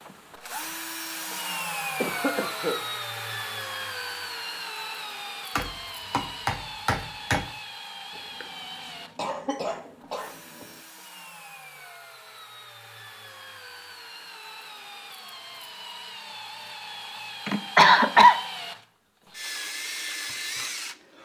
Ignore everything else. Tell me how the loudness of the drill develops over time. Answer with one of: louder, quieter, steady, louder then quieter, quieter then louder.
quieter then louder.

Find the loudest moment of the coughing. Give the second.
18 s.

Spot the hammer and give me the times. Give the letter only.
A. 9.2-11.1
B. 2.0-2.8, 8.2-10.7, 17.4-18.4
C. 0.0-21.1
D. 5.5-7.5
D.